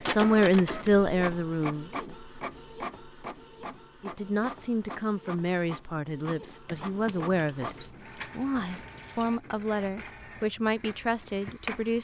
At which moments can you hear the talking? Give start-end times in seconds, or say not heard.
0.0-2.1, 4.0-11.9.